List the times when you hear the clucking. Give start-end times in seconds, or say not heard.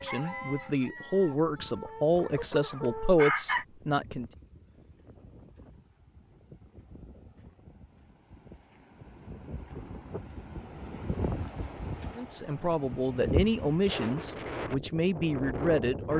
0.0-3.6.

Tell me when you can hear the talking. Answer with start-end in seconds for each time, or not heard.
0.0-4.3, 12.2-16.1.